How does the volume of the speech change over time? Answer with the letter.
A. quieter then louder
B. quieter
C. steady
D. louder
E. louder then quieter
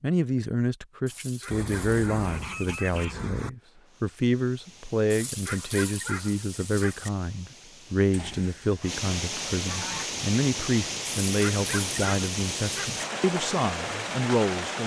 C.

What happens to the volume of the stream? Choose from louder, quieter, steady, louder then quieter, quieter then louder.
louder.